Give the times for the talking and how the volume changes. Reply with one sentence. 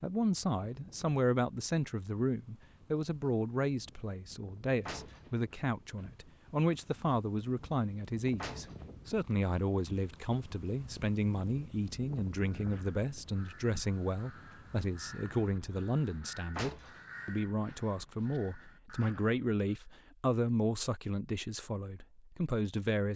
The talking can be heard from 0.0 to 23.1 s, at a steady volume.